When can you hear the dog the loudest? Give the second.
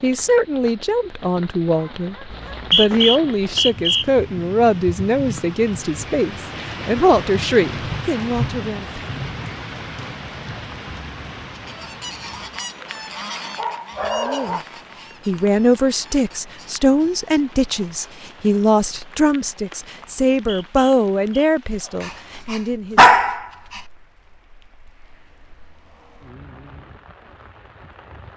23 s.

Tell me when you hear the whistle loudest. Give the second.
3 s.